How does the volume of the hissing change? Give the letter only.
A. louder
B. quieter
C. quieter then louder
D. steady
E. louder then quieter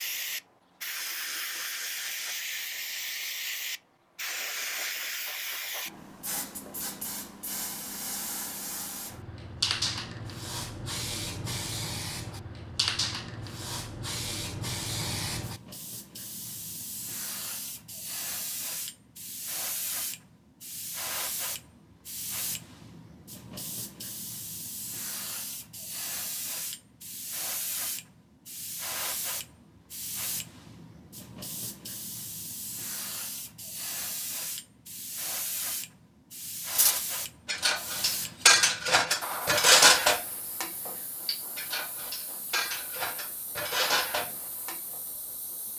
B.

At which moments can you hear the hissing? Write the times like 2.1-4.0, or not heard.
0.0-45.7.